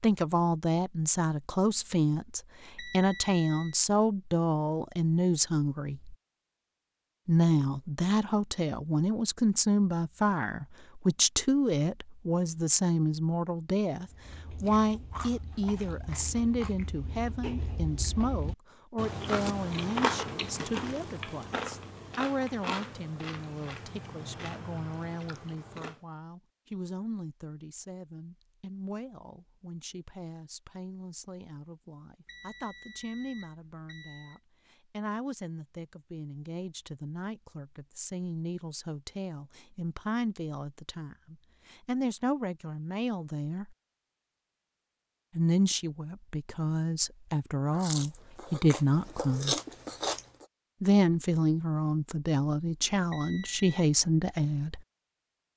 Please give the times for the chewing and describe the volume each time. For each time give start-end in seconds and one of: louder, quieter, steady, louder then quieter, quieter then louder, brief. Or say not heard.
14.1-26.1 louder then quieter
47.7-50.5 brief.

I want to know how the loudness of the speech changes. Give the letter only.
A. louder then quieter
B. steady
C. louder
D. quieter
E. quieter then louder
E.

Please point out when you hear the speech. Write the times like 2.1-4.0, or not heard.
0.0-6.2, 7.2-43.8, 45.4-49.5, 50.8-54.8.